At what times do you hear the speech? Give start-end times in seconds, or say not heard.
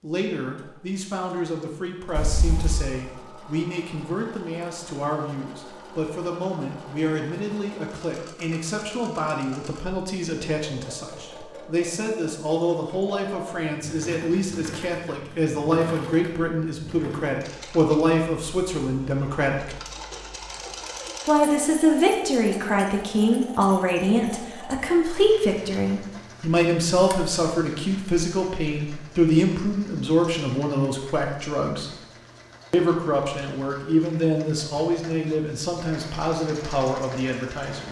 0.0-19.8, 21.2-31.9, 32.7-37.8.